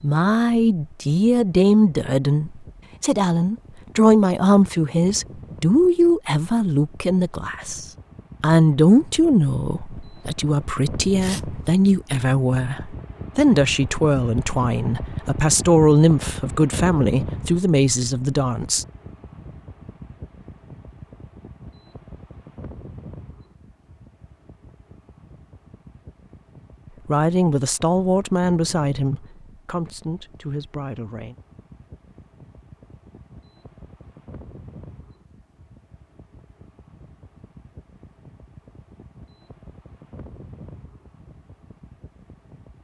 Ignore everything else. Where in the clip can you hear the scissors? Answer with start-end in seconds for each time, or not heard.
not heard.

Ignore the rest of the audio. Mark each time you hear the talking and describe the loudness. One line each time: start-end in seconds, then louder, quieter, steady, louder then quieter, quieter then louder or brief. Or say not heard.
0.0-18.9 steady
27.1-31.4 quieter.